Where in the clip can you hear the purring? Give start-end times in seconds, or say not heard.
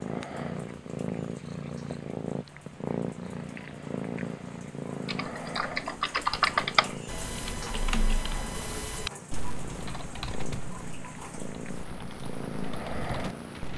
0.0-13.7.